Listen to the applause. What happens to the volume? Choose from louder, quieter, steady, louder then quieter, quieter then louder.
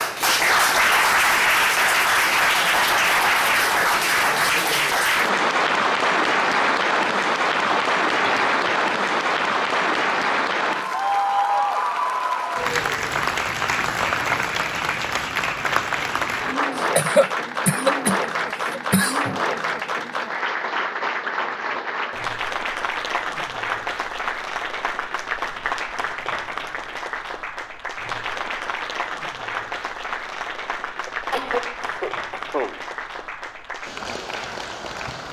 quieter.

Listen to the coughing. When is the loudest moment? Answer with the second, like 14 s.
17 s.